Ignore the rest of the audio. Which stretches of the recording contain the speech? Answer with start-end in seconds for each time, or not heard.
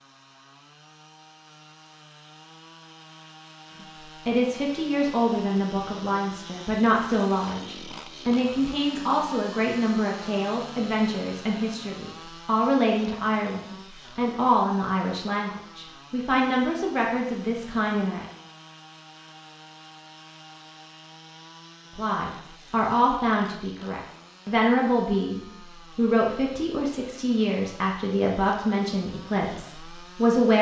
4.2-18.2, 21.9-30.5.